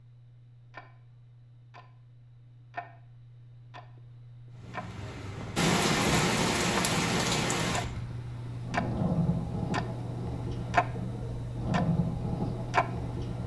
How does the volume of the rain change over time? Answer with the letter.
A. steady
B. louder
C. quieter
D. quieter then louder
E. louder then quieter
D.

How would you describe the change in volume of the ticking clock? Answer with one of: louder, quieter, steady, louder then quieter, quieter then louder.
louder.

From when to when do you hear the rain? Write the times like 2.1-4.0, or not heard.
4.8-13.4.